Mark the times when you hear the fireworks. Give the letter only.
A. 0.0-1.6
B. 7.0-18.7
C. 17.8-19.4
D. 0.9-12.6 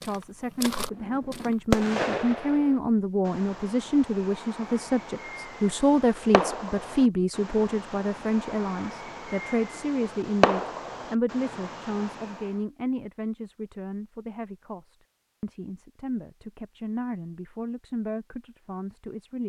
D.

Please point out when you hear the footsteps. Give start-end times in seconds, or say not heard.
0.0-1.6.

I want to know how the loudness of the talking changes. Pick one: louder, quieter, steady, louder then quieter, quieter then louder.
quieter.